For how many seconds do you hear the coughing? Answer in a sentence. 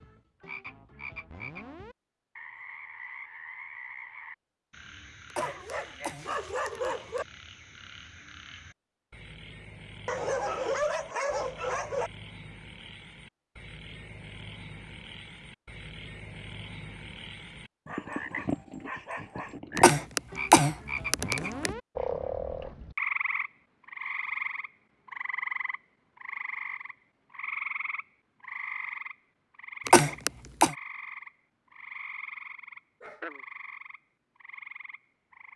You can hear the coughing for 5 seconds altogether.